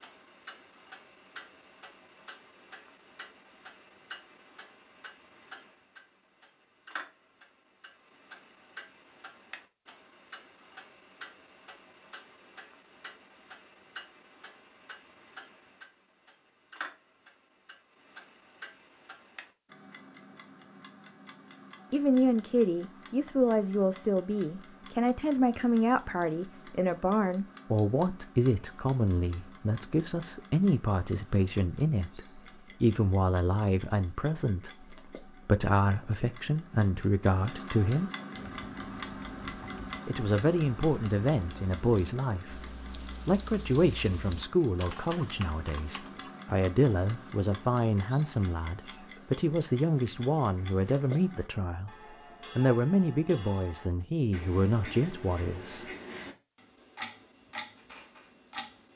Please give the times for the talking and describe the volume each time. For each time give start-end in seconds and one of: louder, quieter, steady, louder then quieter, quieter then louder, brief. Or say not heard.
21.9-38.1 steady
40.0-55.9 steady.